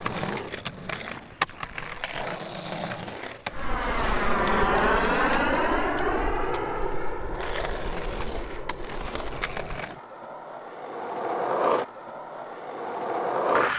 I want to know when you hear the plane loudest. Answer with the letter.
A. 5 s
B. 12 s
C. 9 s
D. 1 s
A.